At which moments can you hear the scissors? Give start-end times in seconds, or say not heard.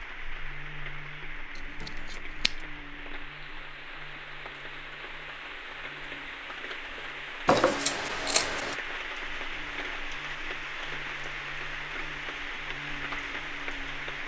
1.6-2.6, 7.5-8.8.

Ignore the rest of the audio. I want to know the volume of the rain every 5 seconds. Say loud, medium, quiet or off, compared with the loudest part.
medium, loud, loud.